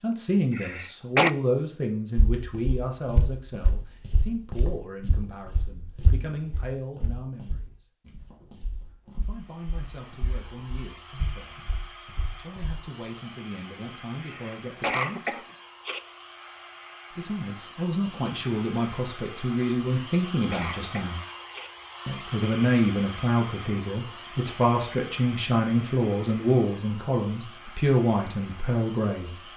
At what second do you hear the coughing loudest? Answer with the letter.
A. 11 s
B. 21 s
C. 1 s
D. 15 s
C.